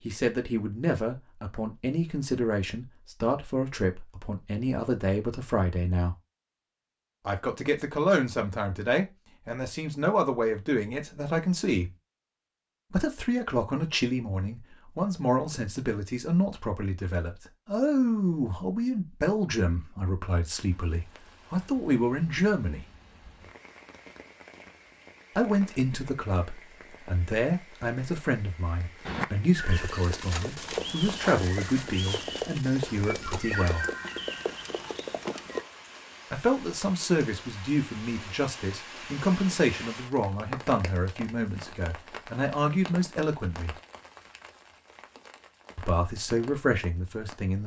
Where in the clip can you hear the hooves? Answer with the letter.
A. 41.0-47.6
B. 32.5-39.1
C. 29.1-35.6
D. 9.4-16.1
C.